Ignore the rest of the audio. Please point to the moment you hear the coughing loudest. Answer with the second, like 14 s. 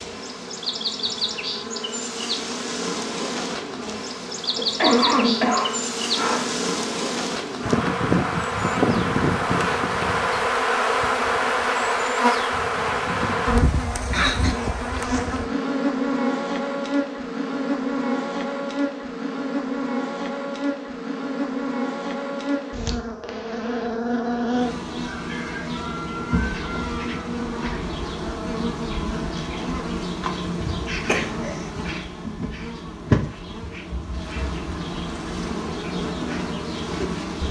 5 s.